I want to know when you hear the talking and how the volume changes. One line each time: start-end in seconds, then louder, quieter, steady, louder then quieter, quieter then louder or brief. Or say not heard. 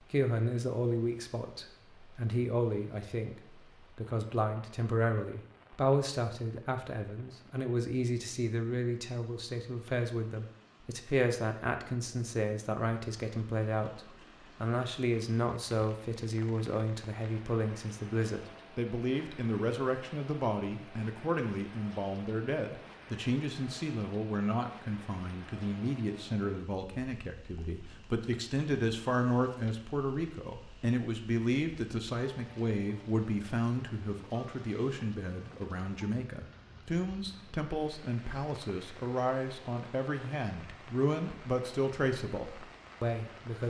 0.1-43.6 steady.